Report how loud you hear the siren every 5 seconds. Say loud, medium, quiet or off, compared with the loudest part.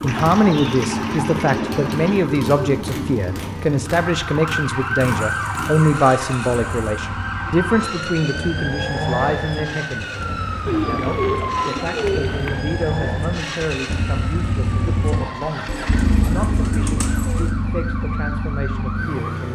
loud, loud, loud, medium.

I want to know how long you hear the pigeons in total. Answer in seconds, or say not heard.
8 s.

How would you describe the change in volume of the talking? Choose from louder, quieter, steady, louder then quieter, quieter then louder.
quieter.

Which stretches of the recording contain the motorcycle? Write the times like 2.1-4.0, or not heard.
0.0-19.5.